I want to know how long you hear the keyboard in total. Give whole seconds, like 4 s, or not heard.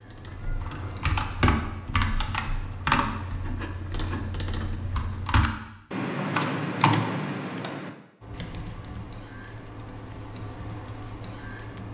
12 s.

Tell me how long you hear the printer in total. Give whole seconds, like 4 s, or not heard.
7 s.